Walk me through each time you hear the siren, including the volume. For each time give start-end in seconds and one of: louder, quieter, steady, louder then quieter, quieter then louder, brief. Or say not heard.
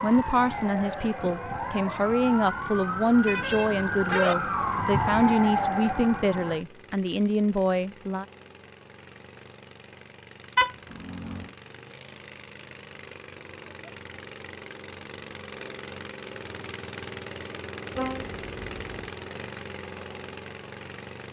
0.0-6.6 louder.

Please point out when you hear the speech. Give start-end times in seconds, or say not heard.
0.0-8.2.